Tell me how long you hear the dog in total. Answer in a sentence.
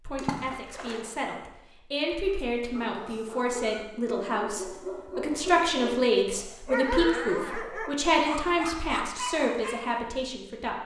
The dog can be heard for 8 seconds in total.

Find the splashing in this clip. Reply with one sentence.
You can hear the splashing from 0.1 to 1.1 s.